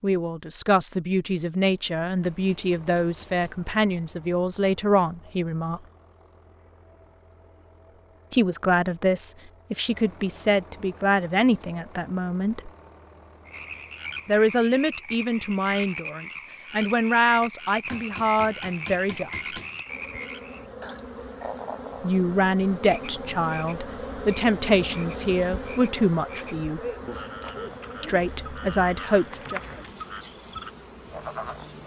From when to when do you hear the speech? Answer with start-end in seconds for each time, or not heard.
0.0-5.8, 8.3-12.7, 14.2-19.6, 22.0-26.8, 28.0-29.6.